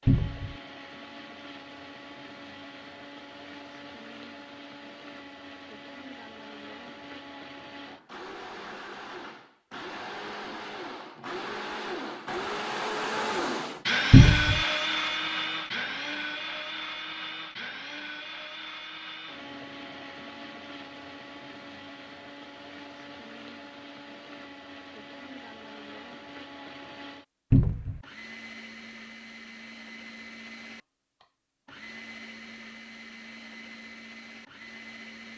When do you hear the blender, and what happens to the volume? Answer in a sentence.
The blender can be heard from 0.0 to 35.3 s, getting louder then quieter.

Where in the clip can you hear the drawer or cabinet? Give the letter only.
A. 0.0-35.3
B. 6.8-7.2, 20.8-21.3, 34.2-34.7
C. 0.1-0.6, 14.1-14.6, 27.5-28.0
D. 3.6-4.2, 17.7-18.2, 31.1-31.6
C.